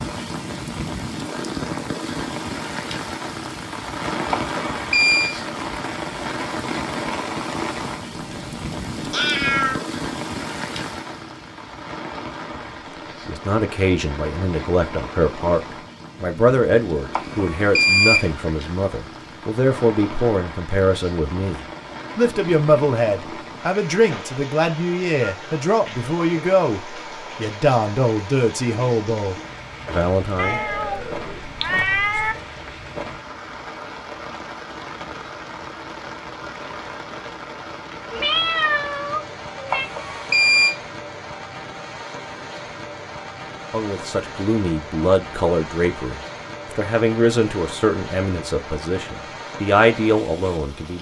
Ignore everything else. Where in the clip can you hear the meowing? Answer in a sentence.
The meowing can be heard from 8.1 to 9.8 s, from 30.4 to 32.4 s and from 38.1 to 39.9 s.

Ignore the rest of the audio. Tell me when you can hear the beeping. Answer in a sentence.
The beeping can be heard from 4.3 to 5.3 s, from 17.1 to 18.3 s and from 39.7 to 40.8 s.